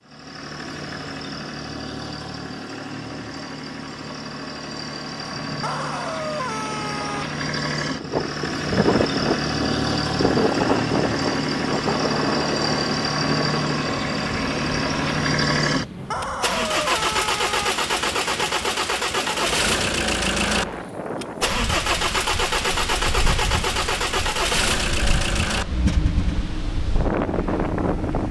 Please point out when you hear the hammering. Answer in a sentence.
The hammering can't be heard in this clip.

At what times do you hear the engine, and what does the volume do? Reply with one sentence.
You can hear the engine from 0.0 to 28.2 s, getting louder.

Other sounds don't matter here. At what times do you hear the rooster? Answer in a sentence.
The rooster can be heard from 5.4 to 7.2 s and from 15.7 to 17.7 s.